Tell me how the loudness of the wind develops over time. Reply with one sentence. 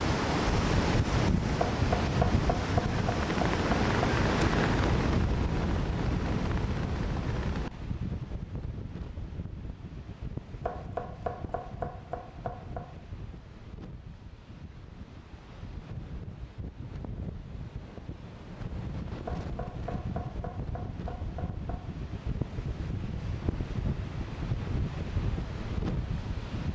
The volume of the wind goes down, then up.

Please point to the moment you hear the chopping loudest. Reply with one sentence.
The loudest moment of the chopping is at 2 seconds.